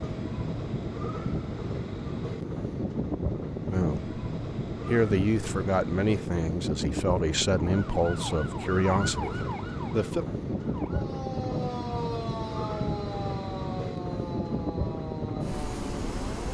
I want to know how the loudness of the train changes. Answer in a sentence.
The volume of the train stays about the same.